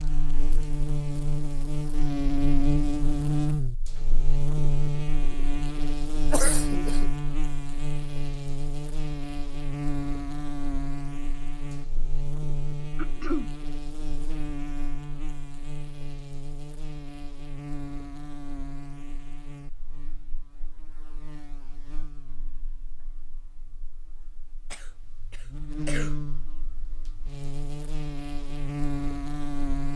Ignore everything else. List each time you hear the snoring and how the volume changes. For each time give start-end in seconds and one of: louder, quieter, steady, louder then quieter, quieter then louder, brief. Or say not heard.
not heard.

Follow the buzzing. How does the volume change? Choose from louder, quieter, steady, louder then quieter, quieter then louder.
quieter then louder.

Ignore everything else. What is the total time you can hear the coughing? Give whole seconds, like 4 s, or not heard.
3 s.